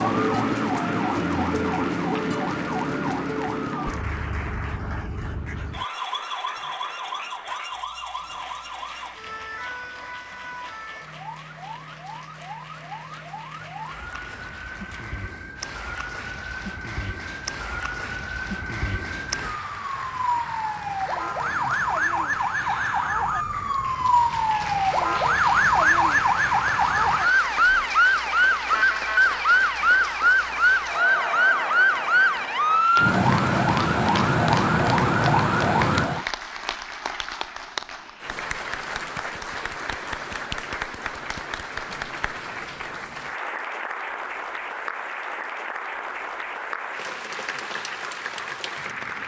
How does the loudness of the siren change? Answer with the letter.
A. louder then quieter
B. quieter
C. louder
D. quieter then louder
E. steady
D.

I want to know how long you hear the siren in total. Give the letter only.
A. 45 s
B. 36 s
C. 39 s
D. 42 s
B.